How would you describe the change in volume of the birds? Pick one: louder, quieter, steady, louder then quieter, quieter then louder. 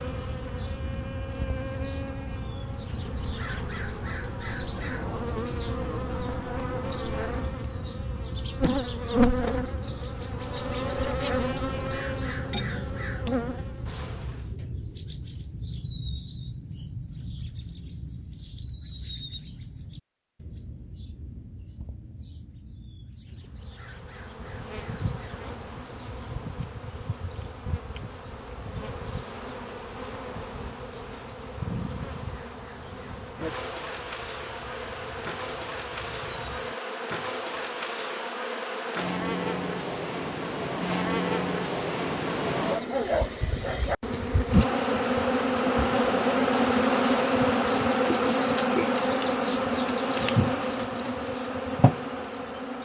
quieter.